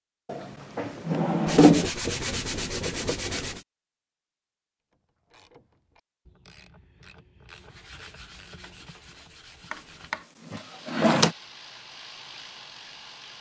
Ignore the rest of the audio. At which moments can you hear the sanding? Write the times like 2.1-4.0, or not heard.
1.4-3.6, 7.5-10.2.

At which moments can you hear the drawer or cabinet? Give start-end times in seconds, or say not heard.
0.2-1.9, 9.7-11.3.